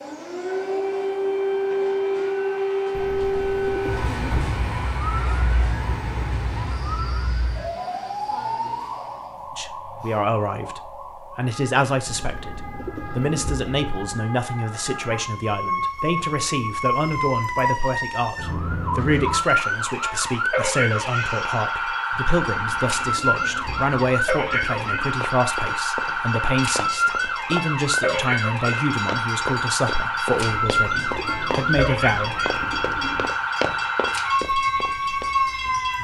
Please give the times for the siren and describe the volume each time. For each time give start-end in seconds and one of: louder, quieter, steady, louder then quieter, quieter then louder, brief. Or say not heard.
0.0-35.9 quieter then louder.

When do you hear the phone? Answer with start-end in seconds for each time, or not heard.
not heard.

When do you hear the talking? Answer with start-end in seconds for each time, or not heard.
9.6-32.4.